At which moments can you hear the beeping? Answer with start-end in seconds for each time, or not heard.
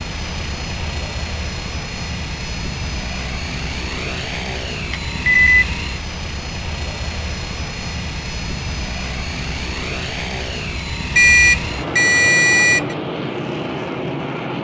4.9-5.7, 11.2-12.9.